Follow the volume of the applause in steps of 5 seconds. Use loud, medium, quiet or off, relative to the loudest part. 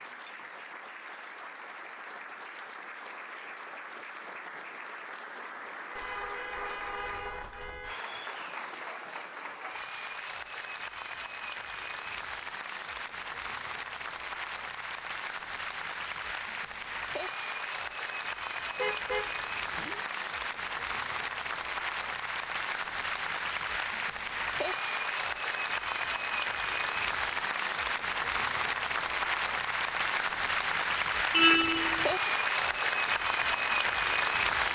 quiet, quiet, medium, medium, medium, loud, loud.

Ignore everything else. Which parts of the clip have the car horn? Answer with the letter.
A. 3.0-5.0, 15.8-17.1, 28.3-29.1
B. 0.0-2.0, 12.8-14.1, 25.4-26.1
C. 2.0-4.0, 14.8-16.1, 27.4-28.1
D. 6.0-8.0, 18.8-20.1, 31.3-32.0
D.